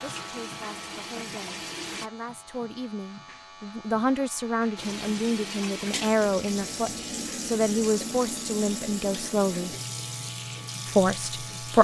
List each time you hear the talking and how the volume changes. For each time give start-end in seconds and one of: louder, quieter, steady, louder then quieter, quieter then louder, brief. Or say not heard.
0.0-9.8 louder
10.8-11.7 brief.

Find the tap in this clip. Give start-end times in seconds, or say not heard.
0.0-2.1, 4.8-11.7.